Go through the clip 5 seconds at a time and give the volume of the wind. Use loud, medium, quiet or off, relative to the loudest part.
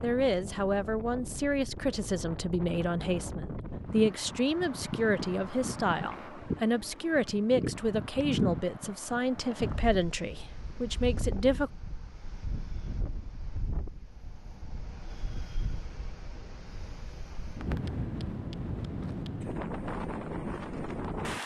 medium, loud, medium, loud, loud.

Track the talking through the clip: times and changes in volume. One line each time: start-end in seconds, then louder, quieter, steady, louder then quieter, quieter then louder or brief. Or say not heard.
0.0-11.7 steady.